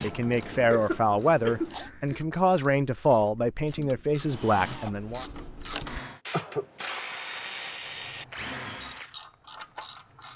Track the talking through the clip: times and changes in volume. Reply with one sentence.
The talking can be heard from 0.0 to 5.2 s, at a steady volume.